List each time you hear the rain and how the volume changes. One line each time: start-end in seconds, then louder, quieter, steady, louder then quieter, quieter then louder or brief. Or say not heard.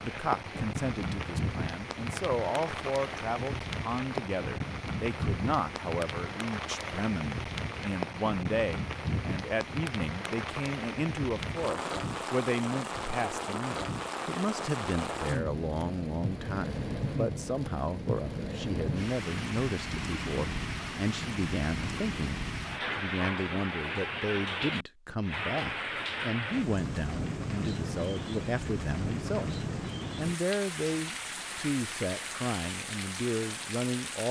0.0-34.2 steady.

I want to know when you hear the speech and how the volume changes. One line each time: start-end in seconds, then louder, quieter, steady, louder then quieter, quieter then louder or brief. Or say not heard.
0.0-34.2 steady.